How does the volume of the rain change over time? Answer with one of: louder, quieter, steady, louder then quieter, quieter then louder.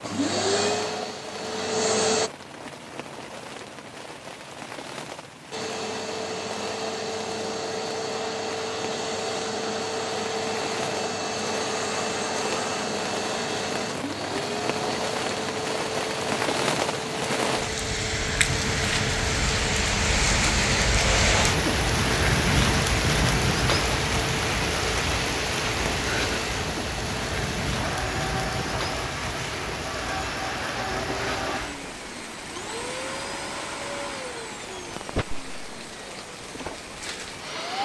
louder then quieter.